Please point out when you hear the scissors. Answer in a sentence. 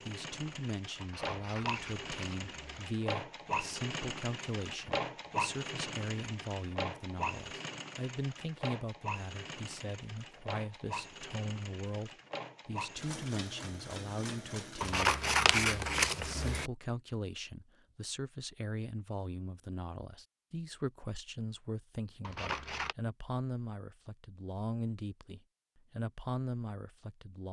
The scissors can be heard from 1.0 to 2.9 s, from 14.8 to 16.7 s and from 22.2 to 22.9 s.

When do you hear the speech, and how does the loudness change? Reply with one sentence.
You can hear the speech from 0.1 to 27.4 s, at a steady volume.